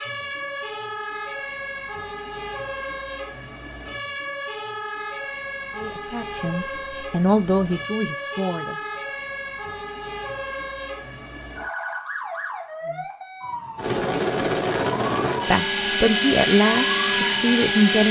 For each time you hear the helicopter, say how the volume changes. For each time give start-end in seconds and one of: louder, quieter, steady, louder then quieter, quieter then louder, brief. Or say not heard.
13.8-18.0 steady.